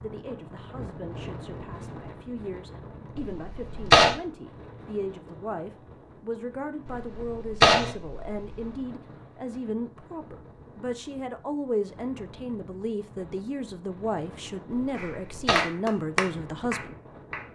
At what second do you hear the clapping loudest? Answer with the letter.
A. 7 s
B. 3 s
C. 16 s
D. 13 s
C.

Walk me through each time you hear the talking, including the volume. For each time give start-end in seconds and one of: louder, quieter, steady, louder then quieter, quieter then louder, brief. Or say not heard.
0.0-16.9 louder.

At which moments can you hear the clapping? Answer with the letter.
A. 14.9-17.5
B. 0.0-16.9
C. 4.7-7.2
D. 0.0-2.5
A.